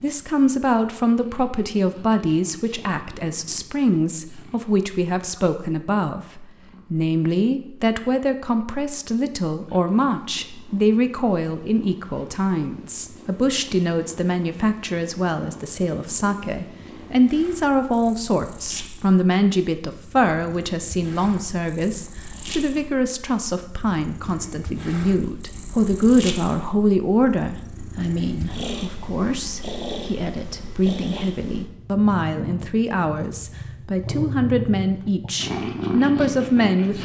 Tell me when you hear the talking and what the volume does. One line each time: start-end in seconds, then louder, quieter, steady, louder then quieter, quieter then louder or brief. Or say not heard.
0.0-37.0 steady.